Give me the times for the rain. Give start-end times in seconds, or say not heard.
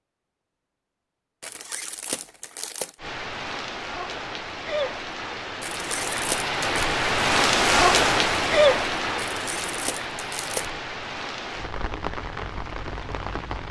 3.0-13.6.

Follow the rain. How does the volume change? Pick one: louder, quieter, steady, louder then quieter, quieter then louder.
louder then quieter.